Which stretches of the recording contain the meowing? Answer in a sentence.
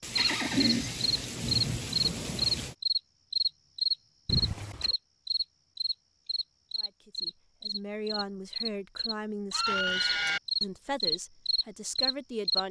The meowing can't be heard in this clip.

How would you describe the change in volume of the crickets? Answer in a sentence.
The volume of the crickets goes down, then up.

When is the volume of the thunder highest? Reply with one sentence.
The volume of the thunder peaks at 2 seconds.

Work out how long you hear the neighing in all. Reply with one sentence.
You can hear the neighing for 3 seconds altogether.